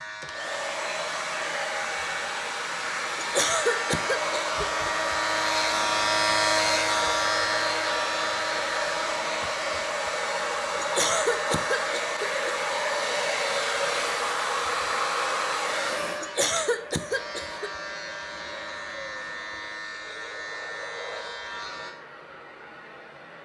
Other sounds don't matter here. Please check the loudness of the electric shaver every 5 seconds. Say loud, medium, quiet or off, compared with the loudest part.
medium, loud, medium, medium, medium.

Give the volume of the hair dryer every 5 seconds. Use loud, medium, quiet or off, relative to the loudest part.
loud, loud, loud, medium, quiet.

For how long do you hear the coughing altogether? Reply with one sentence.
You can hear the coughing for 5 seconds altogether.